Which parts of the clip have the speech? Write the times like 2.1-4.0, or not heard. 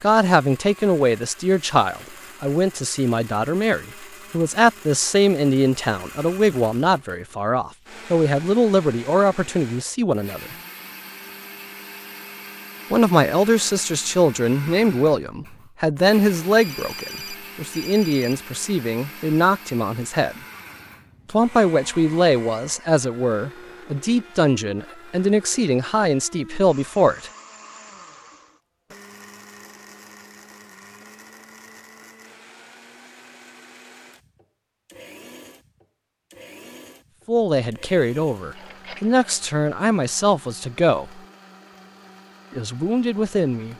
0.0-10.6, 12.9-20.4, 21.2-27.3, 37.2-41.2, 42.5-43.7.